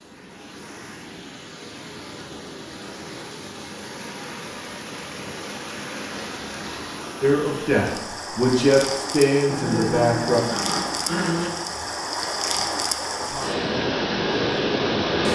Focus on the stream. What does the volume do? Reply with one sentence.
The loudness of the stream goes up.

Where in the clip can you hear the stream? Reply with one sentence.
The stream can be heard from 0.0 to 15.3 s.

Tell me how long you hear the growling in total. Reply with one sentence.
The growling can be heard for 2 seconds in total.